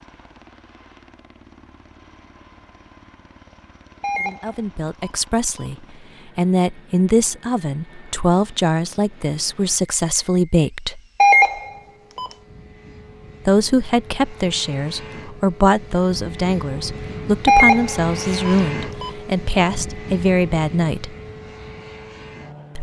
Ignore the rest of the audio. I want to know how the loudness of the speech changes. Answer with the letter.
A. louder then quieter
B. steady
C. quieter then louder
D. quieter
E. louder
B.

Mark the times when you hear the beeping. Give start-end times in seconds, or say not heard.
4.0-5.7, 11.2-12.3, 17.4-19.1.